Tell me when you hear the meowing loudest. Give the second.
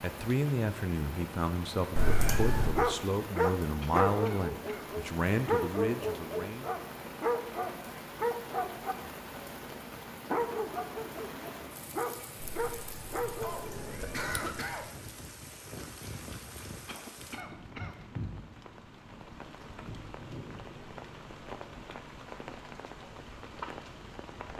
2 s.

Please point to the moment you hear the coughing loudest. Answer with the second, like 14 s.
14 s.